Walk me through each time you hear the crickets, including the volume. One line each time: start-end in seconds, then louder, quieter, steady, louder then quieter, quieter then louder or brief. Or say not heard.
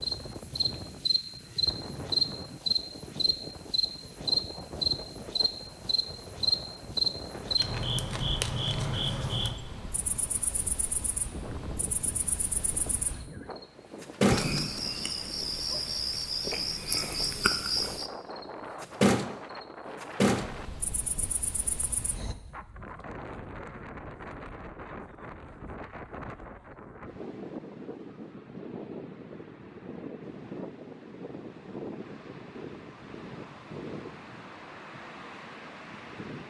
0.0-22.4 quieter then louder.